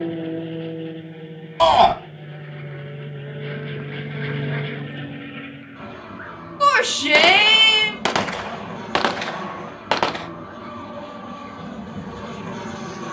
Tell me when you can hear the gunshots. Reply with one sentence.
You can hear the gunshots from 7.2 to 10.3 s.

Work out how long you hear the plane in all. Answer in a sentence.
The plane can be heard for 13 seconds in total.